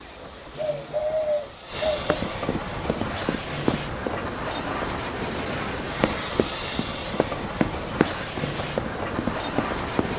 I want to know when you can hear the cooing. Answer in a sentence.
The cooing can be heard from 0.6 to 2.1 s.